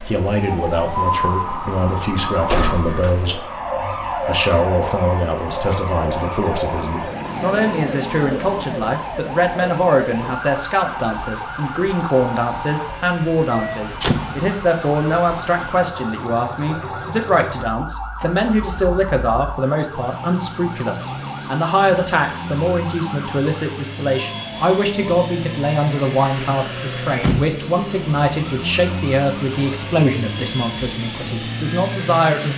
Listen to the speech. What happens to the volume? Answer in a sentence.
The volume of the speech stays about the same.